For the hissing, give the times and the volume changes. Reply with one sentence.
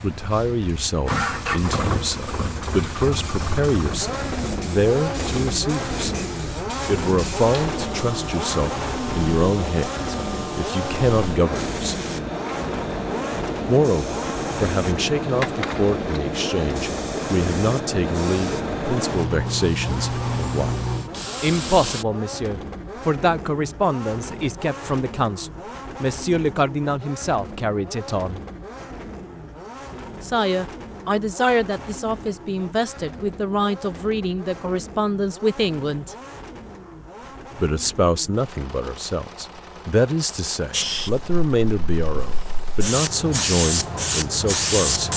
You can hear the hissing from 0.0 to 22.1 s, getting louder; and from 40.7 to 45.1 s, getting louder.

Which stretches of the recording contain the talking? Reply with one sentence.
The talking can be heard from 0.0 to 6.2 s, from 6.8 to 12.1 s, from 13.7 to 20.8 s, from 21.4 to 28.4 s, from 30.2 to 36.1 s and from 37.5 to 45.1 s.